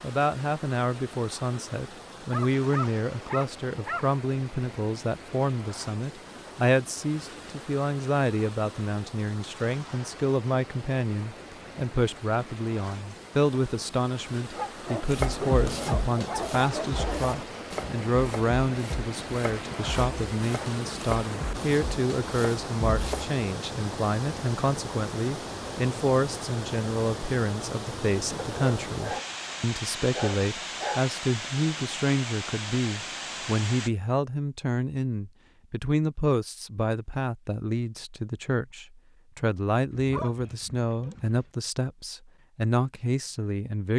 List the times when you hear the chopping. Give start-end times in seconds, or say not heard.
15.1-23.4.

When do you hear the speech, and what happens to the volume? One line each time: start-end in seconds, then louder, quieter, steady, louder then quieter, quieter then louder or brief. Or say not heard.
0.0-43.9 steady.